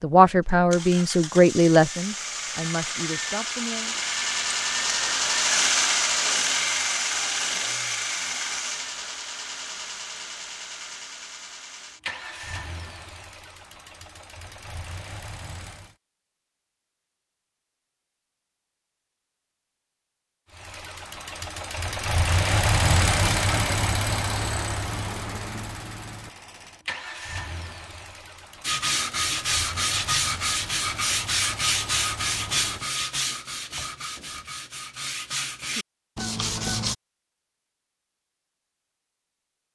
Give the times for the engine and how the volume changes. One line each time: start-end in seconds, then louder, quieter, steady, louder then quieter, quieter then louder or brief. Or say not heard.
0.4-15.9 louder then quieter
20.5-33.0 quieter.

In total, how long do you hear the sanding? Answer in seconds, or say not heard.
8 s.